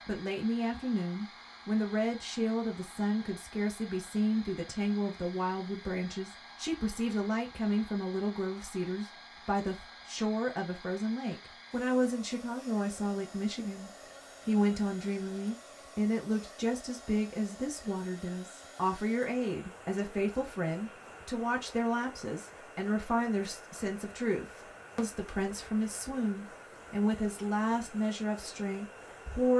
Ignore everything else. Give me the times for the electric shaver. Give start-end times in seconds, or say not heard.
not heard.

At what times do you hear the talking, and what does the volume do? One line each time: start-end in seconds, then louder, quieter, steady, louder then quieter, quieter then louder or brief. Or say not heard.
0.1-29.5 steady.